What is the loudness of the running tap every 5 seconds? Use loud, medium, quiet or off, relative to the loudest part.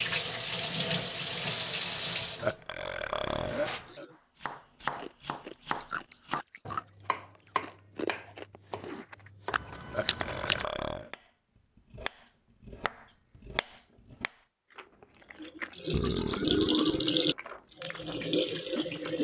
loud, off, off, loud.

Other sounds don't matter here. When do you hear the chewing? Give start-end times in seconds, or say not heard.
4.8-10.7, 14.7-19.1.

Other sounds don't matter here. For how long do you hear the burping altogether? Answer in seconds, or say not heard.
4 s.